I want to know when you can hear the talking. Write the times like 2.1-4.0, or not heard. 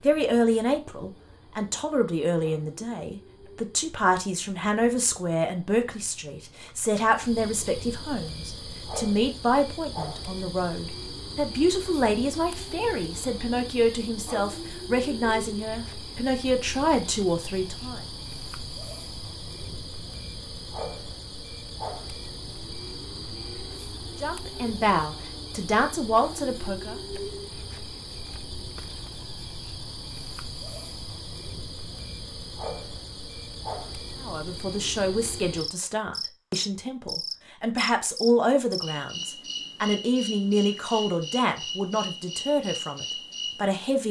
0.0-18.0, 24.2-27.0, 34.2-44.0.